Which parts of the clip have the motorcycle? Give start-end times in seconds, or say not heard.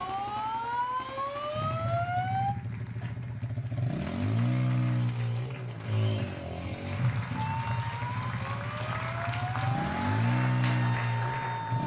1.6-11.8.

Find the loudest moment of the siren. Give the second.
2 s.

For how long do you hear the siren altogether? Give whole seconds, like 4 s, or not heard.
7 s.